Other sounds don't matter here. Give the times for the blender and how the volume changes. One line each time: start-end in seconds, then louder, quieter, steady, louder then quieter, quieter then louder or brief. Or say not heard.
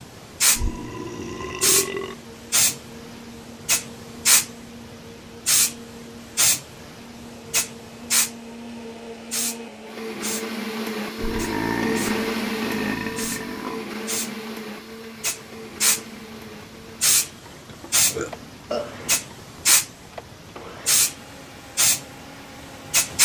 0.0-23.1 louder then quieter.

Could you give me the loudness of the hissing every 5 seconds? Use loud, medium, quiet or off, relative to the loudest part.
loud, loud, medium, loud, loud.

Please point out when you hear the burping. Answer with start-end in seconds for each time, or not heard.
0.6-2.1, 11.2-13.8, 17.6-19.2.